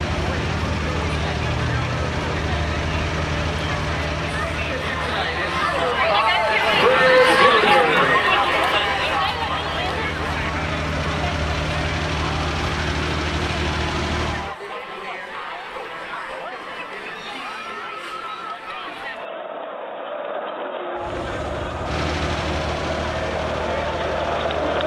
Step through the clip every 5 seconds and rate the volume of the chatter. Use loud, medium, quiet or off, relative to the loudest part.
quiet, loud, quiet, quiet, medium.